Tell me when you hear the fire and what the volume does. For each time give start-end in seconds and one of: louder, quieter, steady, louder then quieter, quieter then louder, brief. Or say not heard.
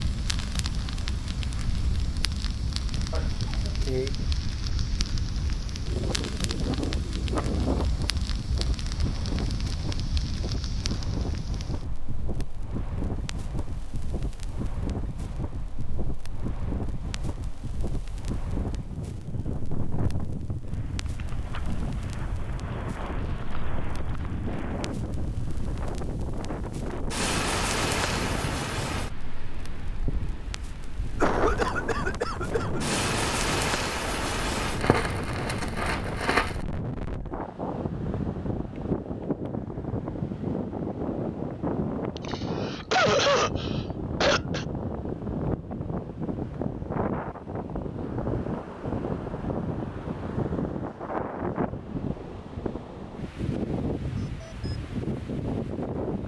0.0-36.6 quieter then louder.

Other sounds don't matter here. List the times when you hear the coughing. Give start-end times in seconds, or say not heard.
3.1-4.1, 31.2-32.9, 42.1-44.6.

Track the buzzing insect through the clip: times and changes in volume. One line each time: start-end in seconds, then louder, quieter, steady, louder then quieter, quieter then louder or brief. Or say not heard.
not heard.